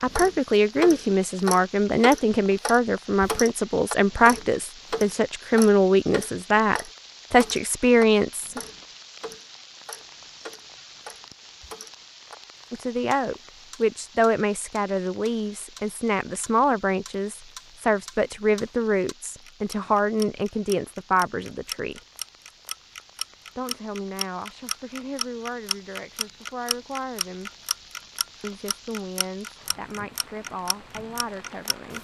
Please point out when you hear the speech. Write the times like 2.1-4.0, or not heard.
0.0-8.6, 12.7-22.0, 23.6-27.5, 28.4-31.9.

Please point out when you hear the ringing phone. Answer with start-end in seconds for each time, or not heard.
not heard.